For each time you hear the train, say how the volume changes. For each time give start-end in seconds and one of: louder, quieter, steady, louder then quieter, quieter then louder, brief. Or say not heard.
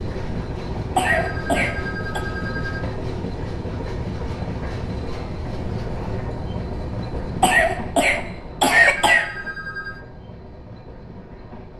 0.0-11.7 quieter.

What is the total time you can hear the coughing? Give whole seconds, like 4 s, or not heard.
3 s.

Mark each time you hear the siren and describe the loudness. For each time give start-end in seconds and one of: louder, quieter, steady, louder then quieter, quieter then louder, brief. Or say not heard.
not heard.